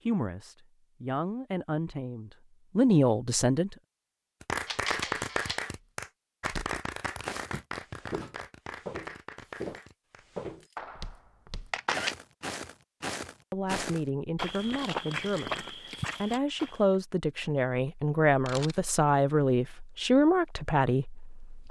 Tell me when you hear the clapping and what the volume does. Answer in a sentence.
The clapping can be heard from 4.4 to 12.1 s, getting quieter.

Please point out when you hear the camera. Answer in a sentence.
You can hear the camera from 4.7 to 5.7 s, from 11.7 to 12.2 s and from 18.2 to 18.9 s.